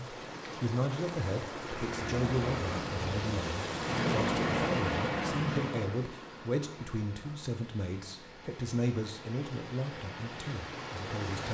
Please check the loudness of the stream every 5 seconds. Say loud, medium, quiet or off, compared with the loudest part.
loud, medium, loud.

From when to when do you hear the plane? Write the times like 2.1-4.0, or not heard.
1.6-6.0.